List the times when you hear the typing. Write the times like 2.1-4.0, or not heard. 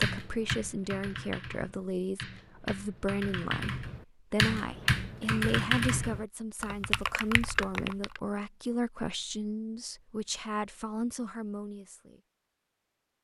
0.0-8.2.